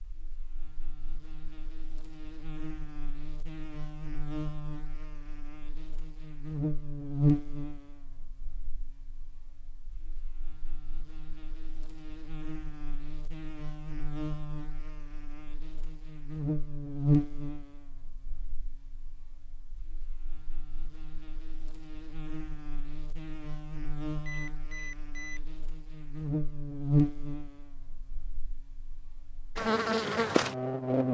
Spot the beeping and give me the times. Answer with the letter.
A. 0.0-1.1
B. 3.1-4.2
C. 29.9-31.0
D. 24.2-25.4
D.